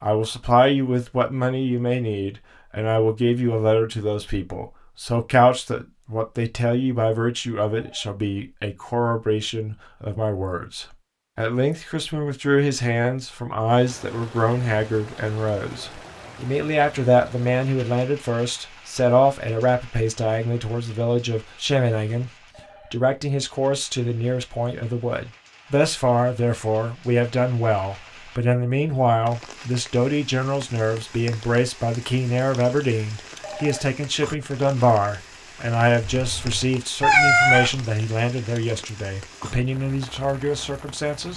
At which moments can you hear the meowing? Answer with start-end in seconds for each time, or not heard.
36.0-37.9.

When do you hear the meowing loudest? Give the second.
37 s.